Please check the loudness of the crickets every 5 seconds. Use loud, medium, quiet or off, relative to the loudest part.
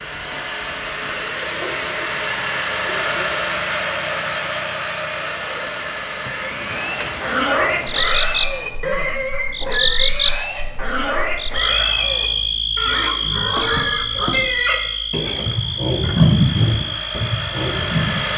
medium, loud, loud, medium.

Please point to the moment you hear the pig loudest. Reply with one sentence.
The volume of the pig peaks at 16 seconds.